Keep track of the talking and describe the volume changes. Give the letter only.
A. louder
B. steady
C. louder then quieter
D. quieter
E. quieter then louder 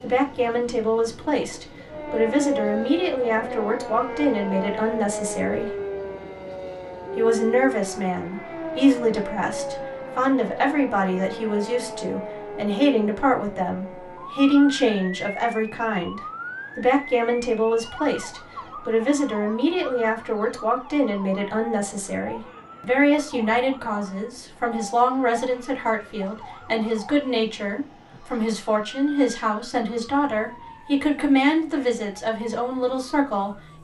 B.